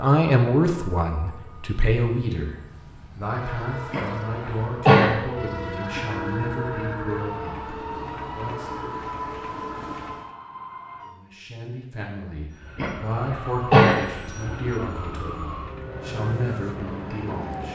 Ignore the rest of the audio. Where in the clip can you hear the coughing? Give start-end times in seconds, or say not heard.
3.9-5.1, 12.8-13.9.